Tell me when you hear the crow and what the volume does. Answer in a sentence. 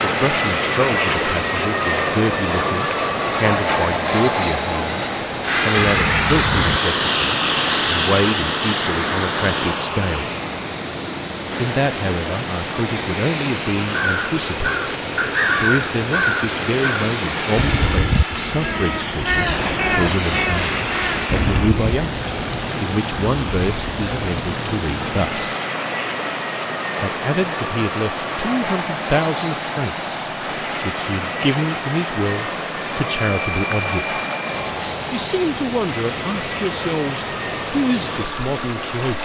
You can hear the crow from 13.8 to 21.8 s, at a steady volume.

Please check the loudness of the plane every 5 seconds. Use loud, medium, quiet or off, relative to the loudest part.
loud, loud, medium, medium, medium, medium, medium, medium.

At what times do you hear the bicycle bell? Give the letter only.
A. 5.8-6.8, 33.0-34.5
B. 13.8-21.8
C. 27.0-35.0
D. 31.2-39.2
A.